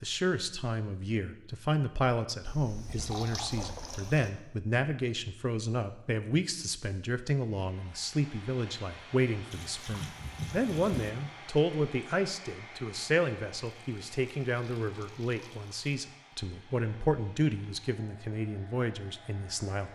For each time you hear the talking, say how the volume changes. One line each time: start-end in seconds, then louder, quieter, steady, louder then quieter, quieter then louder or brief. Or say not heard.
0.0-19.8 steady.